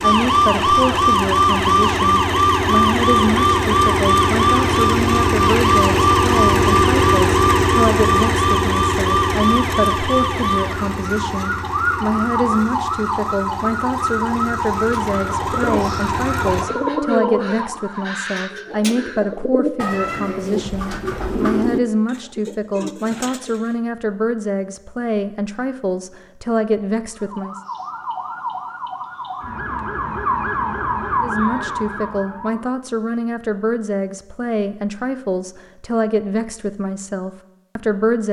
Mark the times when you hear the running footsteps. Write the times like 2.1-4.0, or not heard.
not heard.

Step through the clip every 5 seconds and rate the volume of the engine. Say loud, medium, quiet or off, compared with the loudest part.
loud, loud, quiet, medium, off, off, off, off.